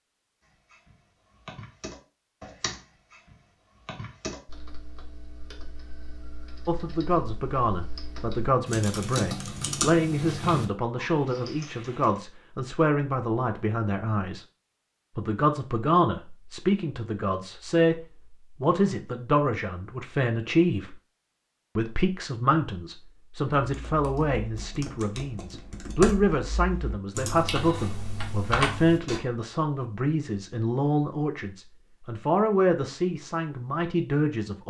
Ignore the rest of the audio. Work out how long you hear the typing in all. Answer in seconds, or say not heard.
17 s.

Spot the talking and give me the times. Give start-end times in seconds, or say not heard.
6.7-14.4, 15.2-20.9, 21.8-34.6.